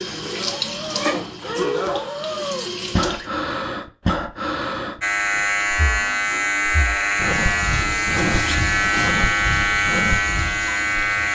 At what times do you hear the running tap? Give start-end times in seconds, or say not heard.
0.0-3.3, 7.1-11.3.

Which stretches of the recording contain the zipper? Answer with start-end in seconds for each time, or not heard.
0.1-1.9, 8.2-9.1.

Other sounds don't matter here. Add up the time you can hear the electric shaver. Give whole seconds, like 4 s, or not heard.
6 s.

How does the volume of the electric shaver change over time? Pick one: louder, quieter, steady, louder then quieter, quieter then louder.
steady.